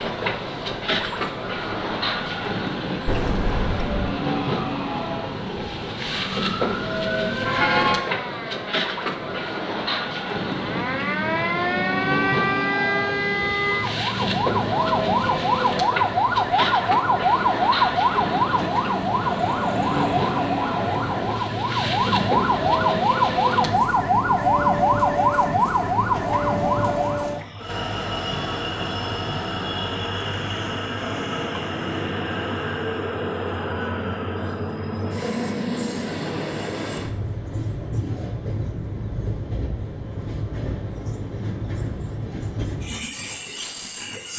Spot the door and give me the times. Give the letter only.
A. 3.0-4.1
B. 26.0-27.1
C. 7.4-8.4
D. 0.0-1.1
A.